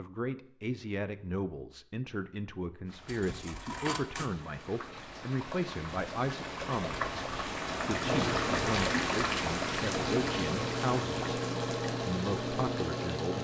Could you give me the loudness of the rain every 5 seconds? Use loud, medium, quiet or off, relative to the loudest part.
quiet, loud, medium.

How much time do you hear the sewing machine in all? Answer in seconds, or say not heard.
5 s.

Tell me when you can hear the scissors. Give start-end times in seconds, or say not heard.
3.0-4.3.